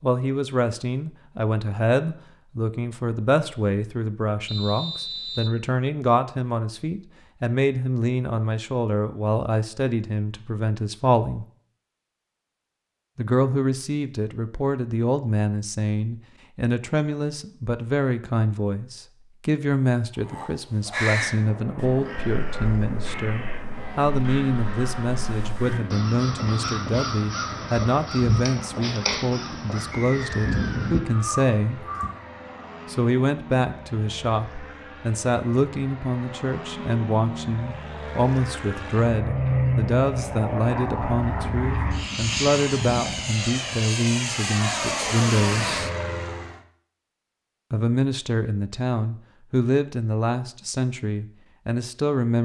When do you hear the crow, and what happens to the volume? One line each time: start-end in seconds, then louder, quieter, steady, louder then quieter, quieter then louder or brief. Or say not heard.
20.1-32.1 quieter then louder.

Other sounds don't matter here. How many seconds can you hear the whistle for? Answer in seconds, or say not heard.
2 s.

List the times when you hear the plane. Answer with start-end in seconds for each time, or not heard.
21.2-46.6.